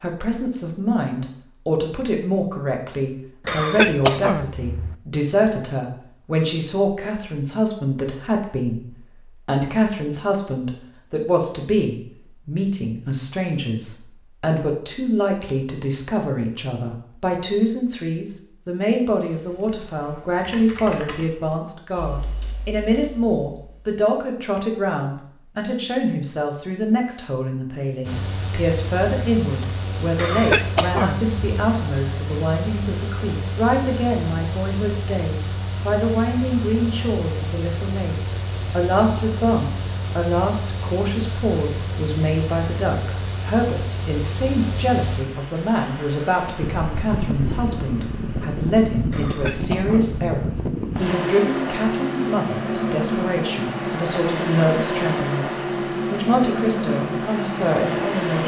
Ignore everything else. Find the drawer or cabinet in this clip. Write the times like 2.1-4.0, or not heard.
not heard.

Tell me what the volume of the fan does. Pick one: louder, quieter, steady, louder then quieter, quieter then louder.
louder.